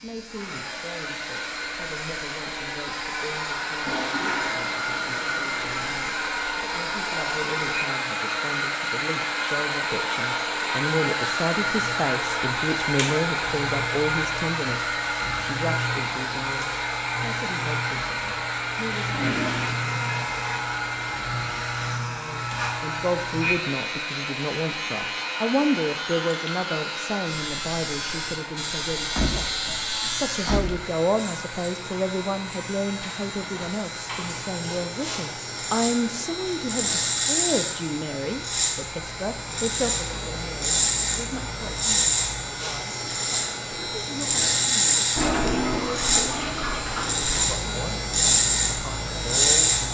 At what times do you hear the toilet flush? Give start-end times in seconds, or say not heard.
3.9-5.9, 19.1-19.8, 45.1-47.5.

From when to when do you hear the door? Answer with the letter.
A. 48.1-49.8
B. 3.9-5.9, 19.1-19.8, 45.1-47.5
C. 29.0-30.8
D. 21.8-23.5
C.